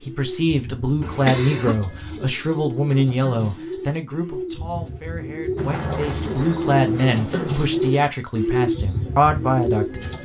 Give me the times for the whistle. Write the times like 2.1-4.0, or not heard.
not heard.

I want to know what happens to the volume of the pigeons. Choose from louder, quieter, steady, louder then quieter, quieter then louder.
louder.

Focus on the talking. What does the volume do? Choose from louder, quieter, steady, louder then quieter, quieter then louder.
quieter then louder.